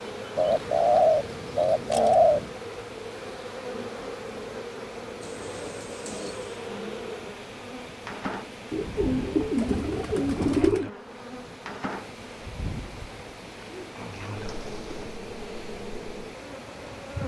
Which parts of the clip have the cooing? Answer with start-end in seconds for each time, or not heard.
0.3-2.5, 5.2-6.6, 8.7-10.9, 13.7-15.2.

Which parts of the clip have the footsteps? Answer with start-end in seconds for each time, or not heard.
not heard.